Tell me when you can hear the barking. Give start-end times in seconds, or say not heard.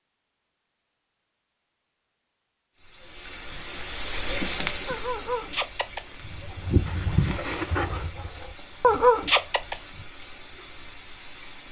4.8-10.1.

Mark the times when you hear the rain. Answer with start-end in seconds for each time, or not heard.
2.8-11.6.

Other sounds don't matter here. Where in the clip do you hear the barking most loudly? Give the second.
9 s.